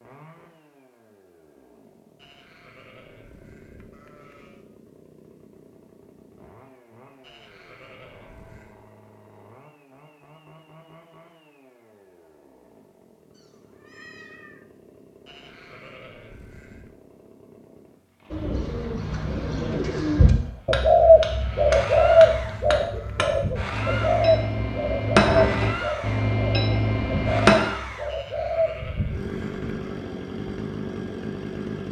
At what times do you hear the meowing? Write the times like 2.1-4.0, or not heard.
13.3-14.6.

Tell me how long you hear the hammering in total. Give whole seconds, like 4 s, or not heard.
7 s.